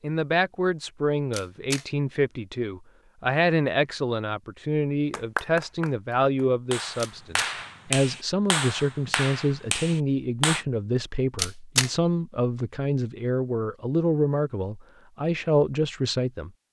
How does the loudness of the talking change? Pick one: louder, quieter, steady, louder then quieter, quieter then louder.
steady.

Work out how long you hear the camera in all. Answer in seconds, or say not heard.
2 s.